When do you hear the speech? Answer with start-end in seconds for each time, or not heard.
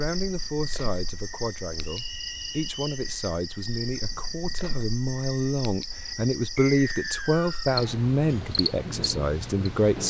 0.0-10.0.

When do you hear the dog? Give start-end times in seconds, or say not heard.
not heard.